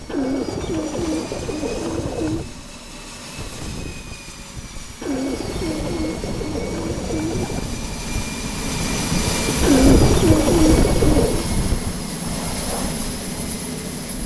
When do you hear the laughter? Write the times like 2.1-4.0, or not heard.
not heard.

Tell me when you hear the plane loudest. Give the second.
10 s.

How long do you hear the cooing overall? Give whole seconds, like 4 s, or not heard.
7 s.